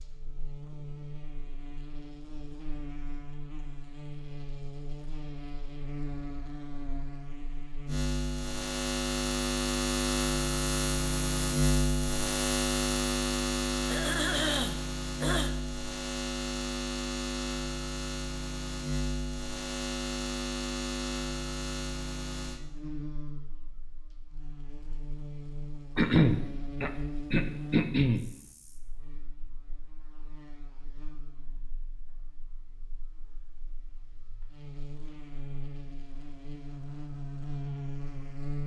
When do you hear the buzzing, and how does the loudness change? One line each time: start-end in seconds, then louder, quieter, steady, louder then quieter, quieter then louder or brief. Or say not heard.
0.0-38.6 louder then quieter.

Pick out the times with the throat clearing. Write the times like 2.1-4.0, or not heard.
13.8-15.6, 25.9-28.2.